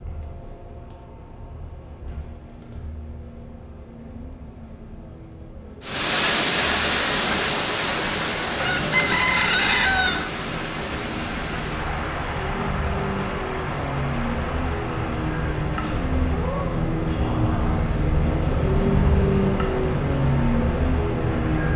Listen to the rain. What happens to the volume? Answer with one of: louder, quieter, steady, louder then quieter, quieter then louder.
quieter.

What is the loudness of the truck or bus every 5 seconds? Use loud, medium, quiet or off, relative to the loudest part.
quiet, quiet, medium, loud, loud.